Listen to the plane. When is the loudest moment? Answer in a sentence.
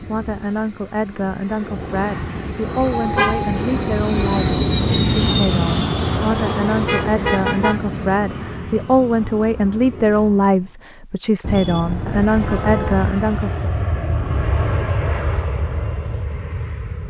The loudest moment of the plane is at 5 seconds.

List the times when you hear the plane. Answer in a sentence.
The plane can be heard from 0.0 to 10.8 s and from 11.9 to 17.0 s.